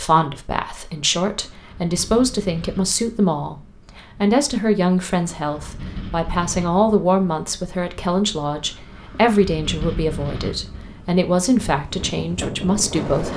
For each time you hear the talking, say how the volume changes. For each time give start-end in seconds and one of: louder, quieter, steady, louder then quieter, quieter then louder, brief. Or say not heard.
0.0-13.3 steady.